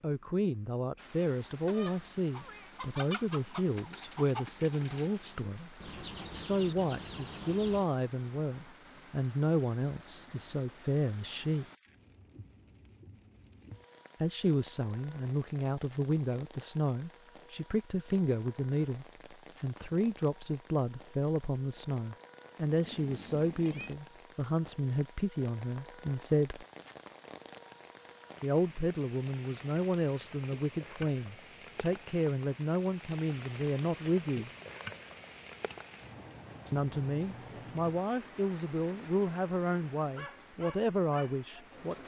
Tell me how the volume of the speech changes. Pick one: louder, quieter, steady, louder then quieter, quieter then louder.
steady.